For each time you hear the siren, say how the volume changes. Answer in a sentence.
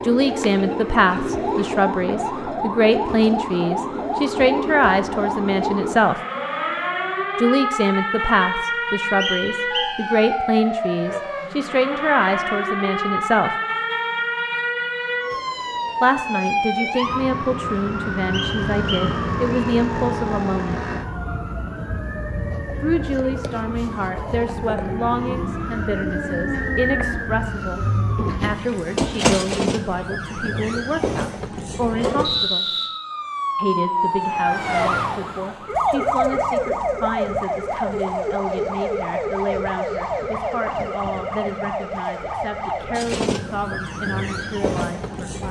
The siren can be heard from 0.0 to 45.4 s, at a steady volume.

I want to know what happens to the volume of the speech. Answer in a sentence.
The loudness of the speech goes down.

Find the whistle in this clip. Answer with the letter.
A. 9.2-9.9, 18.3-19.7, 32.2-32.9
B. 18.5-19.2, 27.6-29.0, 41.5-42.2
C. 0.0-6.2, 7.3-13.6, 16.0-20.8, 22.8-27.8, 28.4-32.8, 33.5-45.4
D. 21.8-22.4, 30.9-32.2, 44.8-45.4
A.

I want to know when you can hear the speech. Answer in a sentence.
The speech can be heard from 0.0 to 6.2 s, from 7.3 to 13.6 s, from 16.0 to 20.8 s, from 22.8 to 27.8 s, from 28.4 to 32.8 s and from 33.5 to 45.4 s.